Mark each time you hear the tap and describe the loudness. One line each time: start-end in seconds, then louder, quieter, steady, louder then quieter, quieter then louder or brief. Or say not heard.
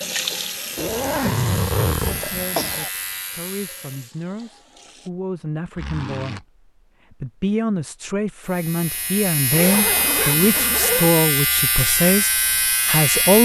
0.0-5.1 quieter.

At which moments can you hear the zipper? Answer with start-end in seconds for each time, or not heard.
0.8-2.2, 5.8-6.4, 9.5-11.2.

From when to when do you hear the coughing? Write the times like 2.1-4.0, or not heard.
2.1-2.9.